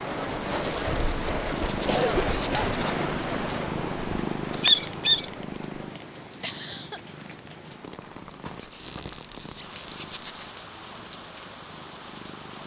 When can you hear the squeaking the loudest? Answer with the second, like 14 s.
5 s.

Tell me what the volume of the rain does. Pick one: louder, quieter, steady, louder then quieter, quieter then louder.
quieter.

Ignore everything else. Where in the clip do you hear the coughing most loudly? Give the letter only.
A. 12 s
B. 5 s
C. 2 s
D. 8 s
C.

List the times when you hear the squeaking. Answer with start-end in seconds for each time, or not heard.
0.2-2.2, 4.6-5.3, 8.6-10.4.